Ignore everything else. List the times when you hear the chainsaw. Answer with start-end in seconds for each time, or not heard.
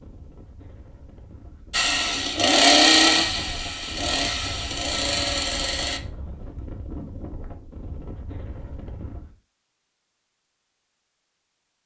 1.7-6.0.